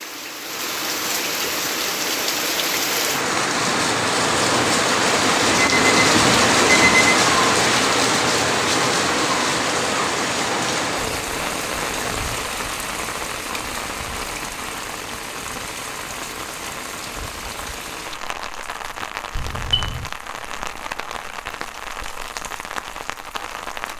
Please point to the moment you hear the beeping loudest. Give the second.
7 s.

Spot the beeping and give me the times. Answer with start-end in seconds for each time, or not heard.
5.5-7.2, 19.4-20.1.